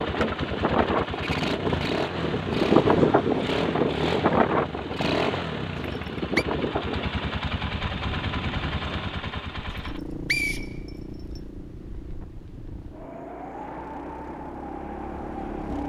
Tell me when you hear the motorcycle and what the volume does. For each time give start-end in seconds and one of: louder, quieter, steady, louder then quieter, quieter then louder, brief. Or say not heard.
0.0-15.8 quieter.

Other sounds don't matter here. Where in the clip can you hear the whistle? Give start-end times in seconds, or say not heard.
5.8-6.5, 9.8-11.4.